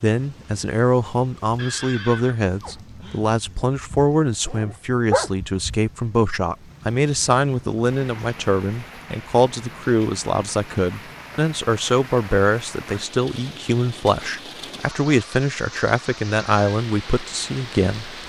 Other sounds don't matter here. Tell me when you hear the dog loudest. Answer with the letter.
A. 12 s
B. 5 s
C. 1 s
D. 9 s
B.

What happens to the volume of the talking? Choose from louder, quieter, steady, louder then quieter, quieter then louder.
steady.